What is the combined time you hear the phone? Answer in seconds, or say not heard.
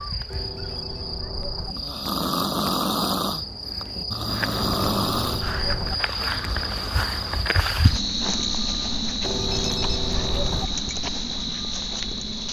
4 s.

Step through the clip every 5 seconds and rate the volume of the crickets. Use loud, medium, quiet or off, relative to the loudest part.
medium, loud, loud.